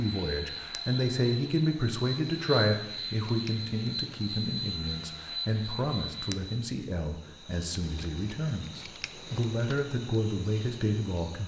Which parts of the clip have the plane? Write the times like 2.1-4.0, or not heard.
0.0-6.7.